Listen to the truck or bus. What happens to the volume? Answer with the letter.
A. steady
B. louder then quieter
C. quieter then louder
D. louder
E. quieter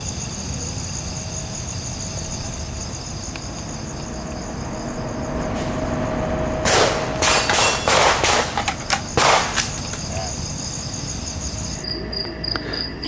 B.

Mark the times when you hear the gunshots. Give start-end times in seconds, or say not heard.
6.7-10.4.